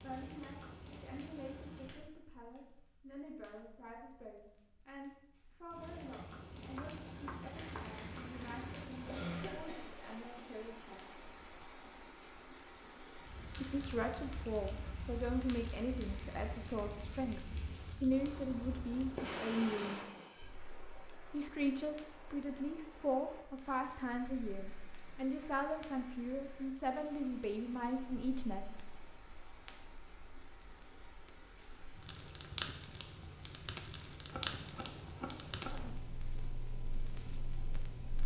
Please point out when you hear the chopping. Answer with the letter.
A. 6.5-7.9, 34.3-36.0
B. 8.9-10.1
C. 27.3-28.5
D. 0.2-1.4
A.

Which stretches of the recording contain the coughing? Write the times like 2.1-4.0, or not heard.
8.9-10.1.